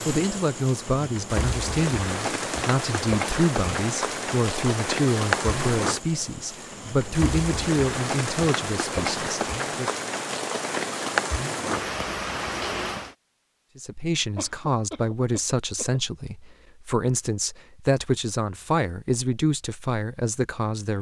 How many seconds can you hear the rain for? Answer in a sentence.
You can hear the rain for 13 seconds altogether.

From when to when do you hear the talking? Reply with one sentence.
The talking can be heard from 0.1 to 9.9 s and from 13.8 to 20.9 s.